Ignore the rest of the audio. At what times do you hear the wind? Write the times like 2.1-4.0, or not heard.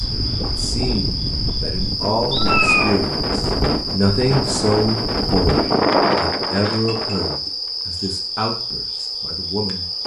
0.0-7.4.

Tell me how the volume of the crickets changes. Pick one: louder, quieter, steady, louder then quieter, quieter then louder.
steady.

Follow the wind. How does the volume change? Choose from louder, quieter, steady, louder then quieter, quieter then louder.
louder.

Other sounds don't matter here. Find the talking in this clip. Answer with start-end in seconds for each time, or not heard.
0.0-9.8.